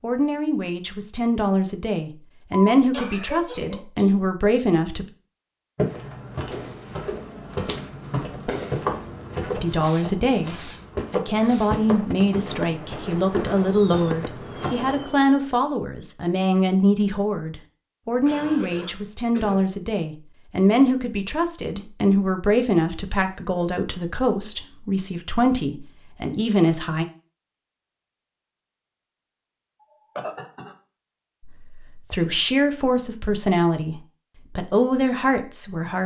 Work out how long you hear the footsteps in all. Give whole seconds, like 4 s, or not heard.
9 s.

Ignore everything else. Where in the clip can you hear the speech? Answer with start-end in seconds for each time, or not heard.
0.0-5.0, 9.6-27.1, 31.4-36.0.